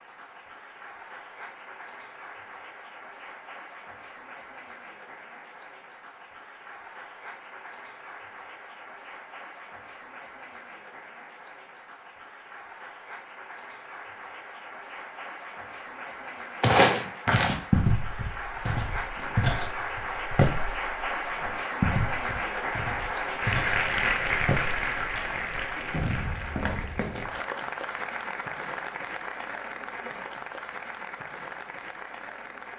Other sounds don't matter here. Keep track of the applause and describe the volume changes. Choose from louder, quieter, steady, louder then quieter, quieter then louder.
louder then quieter.